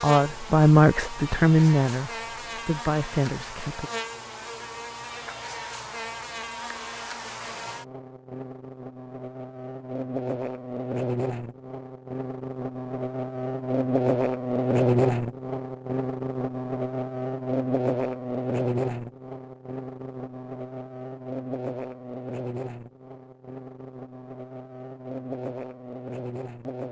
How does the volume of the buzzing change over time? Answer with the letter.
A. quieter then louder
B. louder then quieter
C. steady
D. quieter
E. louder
B.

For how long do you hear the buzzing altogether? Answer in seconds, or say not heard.
27 s.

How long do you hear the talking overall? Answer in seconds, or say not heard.
4 s.